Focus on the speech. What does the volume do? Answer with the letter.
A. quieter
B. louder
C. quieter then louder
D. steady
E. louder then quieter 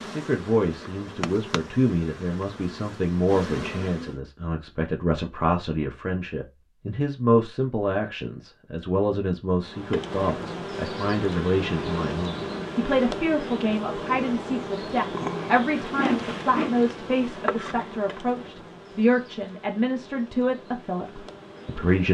D.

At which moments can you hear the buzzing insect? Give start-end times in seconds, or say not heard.
0.0-4.2, 9.6-22.0.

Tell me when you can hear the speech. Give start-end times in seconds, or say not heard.
0.1-22.0.